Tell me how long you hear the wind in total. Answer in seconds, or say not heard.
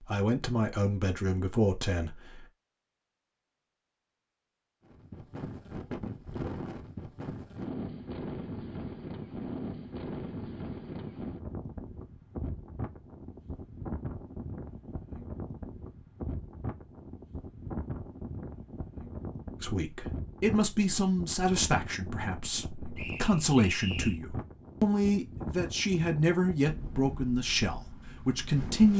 24 s.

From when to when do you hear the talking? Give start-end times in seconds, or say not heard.
0.1-2.5, 19.6-28.9.